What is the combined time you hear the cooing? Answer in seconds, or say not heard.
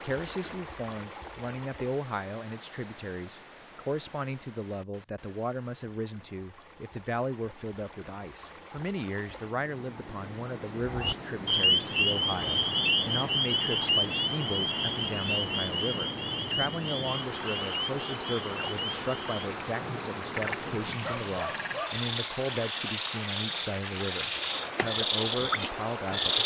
not heard.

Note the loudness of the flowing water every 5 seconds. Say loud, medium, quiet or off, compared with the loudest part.
medium, quiet, loud, loud, loud, loud.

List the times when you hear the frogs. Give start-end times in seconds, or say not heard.
10.8-26.4.